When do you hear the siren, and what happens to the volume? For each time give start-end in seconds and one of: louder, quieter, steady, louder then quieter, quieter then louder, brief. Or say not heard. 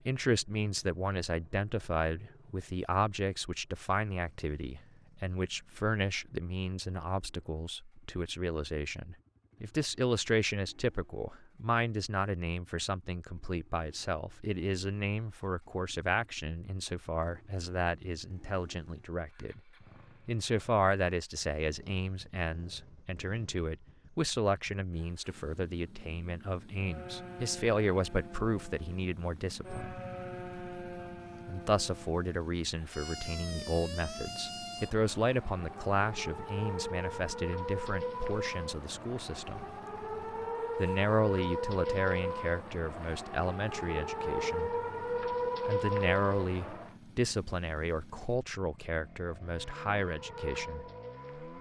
26.8-47.0 louder
49.5-51.5 brief.